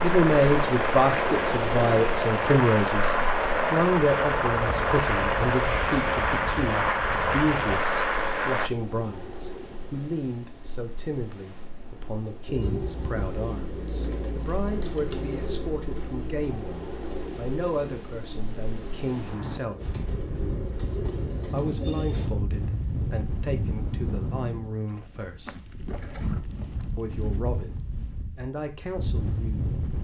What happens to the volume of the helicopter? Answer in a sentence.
The volume of the helicopter stays about the same.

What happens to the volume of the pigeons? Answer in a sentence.
The volume of the pigeons goes down, then up.